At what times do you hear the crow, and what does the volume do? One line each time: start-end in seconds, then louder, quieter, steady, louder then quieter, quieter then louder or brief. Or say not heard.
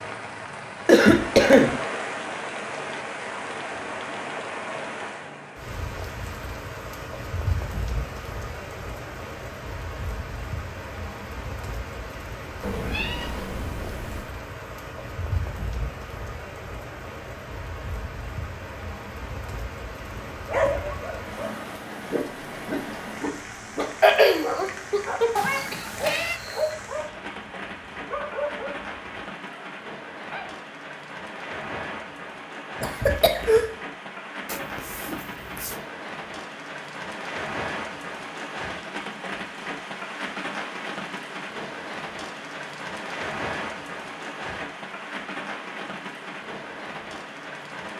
not heard.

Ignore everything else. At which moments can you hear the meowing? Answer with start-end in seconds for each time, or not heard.
12.6-14.3, 25.4-26.4, 34.5-35.9.